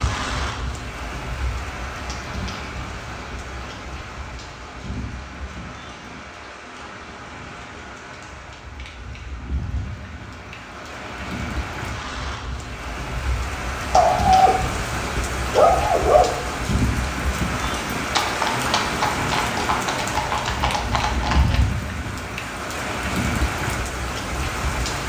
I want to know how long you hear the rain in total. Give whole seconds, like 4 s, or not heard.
25 s.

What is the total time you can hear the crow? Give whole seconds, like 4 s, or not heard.
not heard.